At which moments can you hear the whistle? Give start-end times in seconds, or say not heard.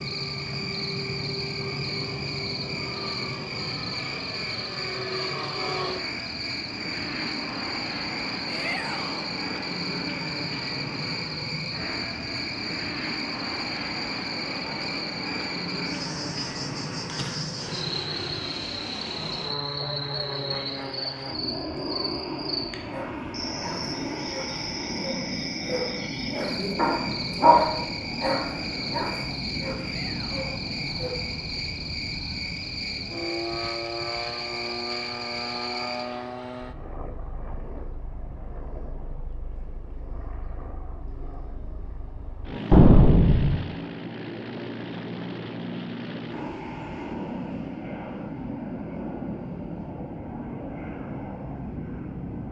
not heard.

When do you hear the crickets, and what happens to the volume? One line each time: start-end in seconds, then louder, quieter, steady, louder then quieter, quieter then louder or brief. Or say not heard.
0.0-36.1 steady.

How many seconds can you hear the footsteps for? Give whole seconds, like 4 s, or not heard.
not heard.